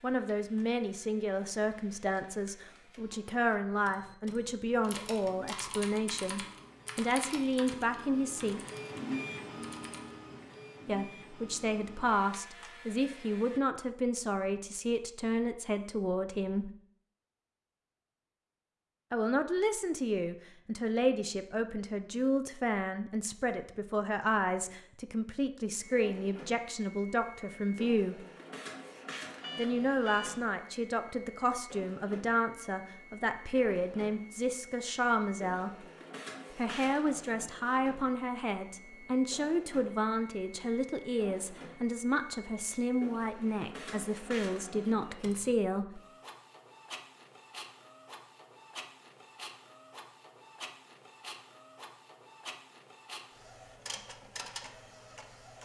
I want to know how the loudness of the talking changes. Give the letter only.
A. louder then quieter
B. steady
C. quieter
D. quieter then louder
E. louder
B.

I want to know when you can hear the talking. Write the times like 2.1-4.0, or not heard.
0.0-8.6, 10.8-16.7, 19.1-28.2, 29.6-35.9, 36.5-46.0.